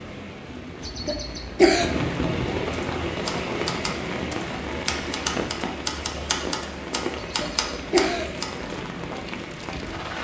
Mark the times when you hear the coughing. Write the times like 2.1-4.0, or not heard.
0.8-1.9, 7.2-8.3.